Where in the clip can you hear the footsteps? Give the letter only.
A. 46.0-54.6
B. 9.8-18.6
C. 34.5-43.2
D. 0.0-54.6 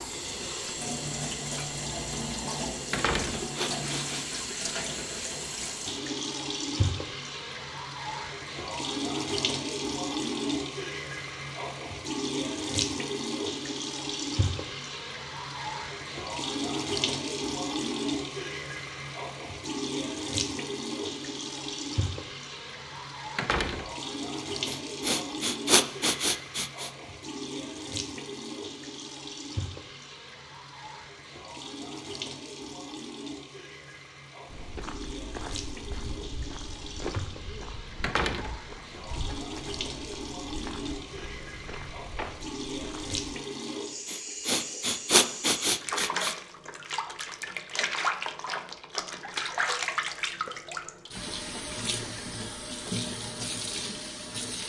C.